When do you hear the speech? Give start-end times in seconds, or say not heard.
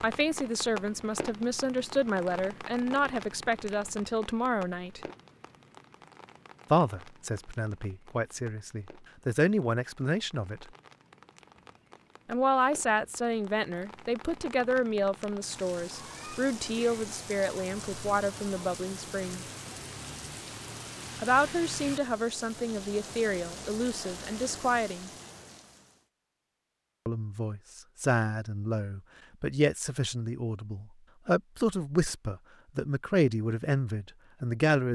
0.0-5.0, 6.7-10.7, 12.2-19.4, 21.1-25.1, 27.1-34.9.